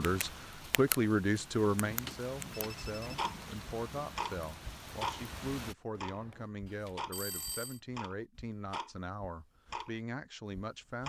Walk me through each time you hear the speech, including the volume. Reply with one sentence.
You can hear the speech from 0.0 to 11.0 s, getting quieter.